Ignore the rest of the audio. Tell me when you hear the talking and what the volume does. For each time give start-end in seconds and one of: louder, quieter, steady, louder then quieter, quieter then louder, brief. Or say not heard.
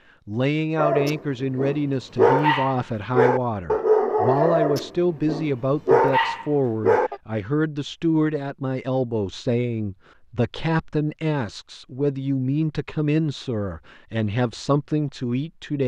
0.2-15.8 steady.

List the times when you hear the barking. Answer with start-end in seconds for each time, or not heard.
0.8-7.2.